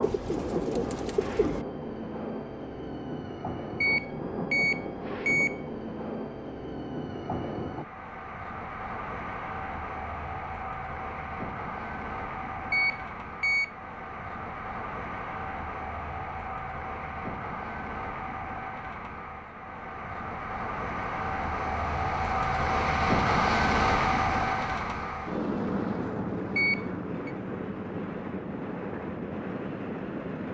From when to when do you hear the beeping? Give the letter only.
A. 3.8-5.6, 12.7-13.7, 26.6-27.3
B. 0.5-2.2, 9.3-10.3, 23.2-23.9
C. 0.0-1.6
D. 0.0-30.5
A.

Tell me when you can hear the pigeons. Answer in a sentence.
The pigeons can be heard from 0.0 to 1.6 s.